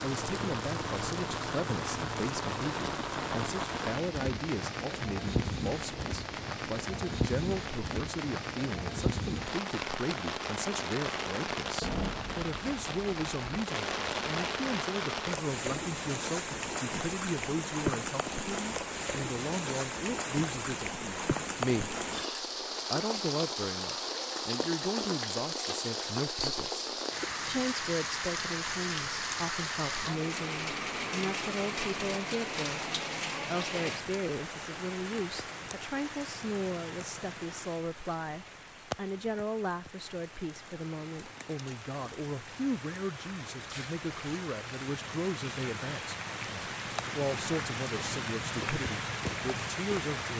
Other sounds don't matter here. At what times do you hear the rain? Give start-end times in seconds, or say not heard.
0.0-50.3.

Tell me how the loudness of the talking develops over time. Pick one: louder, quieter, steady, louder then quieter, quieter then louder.
steady.